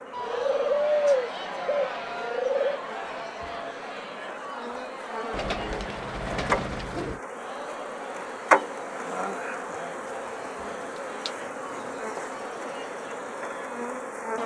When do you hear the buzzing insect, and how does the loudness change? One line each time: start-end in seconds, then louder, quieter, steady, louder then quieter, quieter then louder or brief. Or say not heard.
0.0-14.4 louder then quieter.